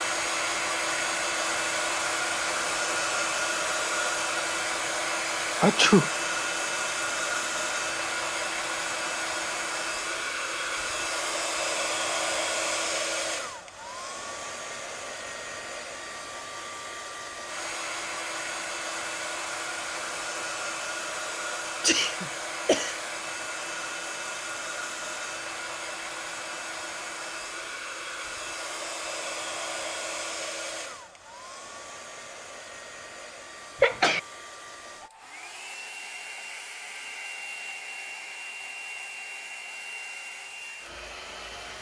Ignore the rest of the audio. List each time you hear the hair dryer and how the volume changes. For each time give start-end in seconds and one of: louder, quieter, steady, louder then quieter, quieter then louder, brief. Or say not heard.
0.0-41.7 quieter.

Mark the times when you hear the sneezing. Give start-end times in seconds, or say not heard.
5.6-6.1, 21.8-22.9, 33.8-34.2.